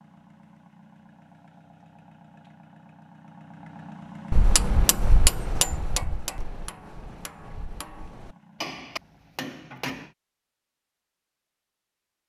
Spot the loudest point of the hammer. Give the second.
5 s.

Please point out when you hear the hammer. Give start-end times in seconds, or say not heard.
4.3-10.2.